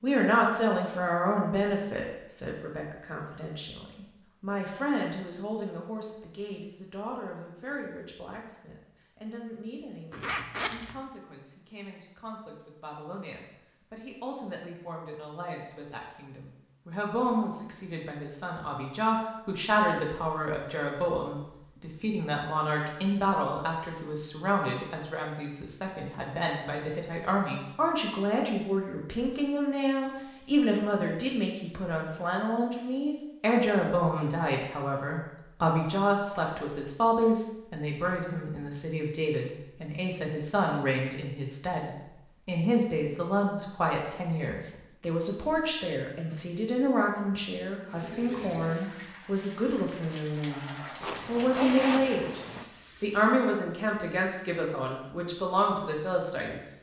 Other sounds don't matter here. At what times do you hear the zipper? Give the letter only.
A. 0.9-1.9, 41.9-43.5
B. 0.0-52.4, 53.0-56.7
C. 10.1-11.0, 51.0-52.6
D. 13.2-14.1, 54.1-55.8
C.